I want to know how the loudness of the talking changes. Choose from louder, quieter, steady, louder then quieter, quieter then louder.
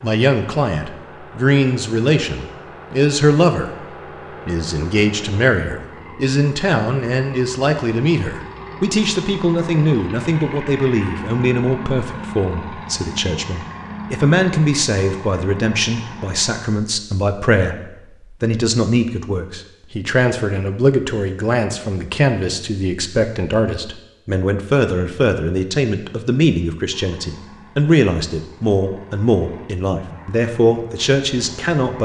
steady.